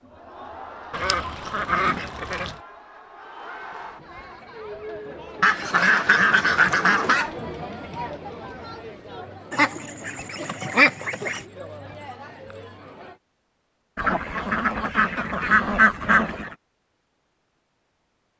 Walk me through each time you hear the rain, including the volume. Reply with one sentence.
The rain can't be heard in this clip.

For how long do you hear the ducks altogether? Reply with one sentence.
You can hear the ducks for 8 seconds altogether.